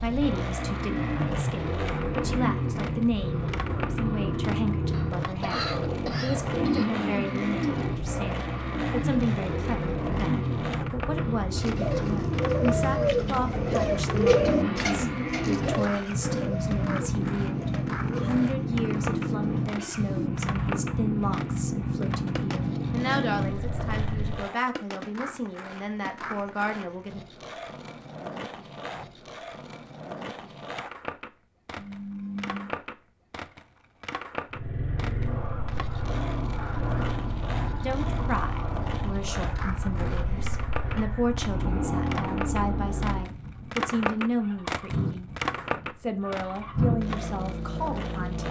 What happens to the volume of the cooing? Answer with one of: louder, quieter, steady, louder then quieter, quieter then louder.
quieter.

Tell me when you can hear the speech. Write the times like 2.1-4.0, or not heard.
0.0-27.2, 37.8-45.3, 46.0-48.4.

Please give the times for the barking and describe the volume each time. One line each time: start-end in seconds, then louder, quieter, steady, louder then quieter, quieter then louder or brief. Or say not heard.
not heard.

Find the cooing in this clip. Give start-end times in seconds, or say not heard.
11.6-20.3.